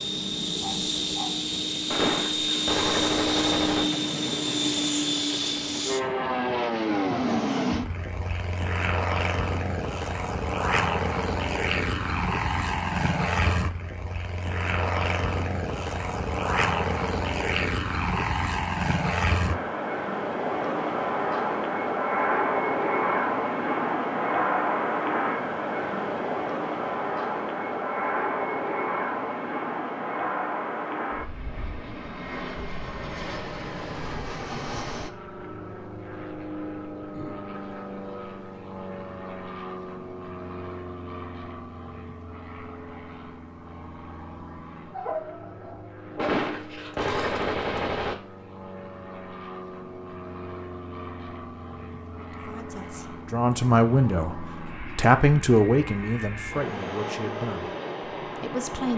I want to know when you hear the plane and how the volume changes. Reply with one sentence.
You can hear the plane from 0.0 to 58.9 s, getting quieter.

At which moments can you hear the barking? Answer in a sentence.
You can hear the barking from 0.6 to 1.4 s and from 44.9 to 46.4 s.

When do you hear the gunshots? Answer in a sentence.
You can hear the gunshots from 1.9 to 3.9 s and from 46.1 to 48.1 s.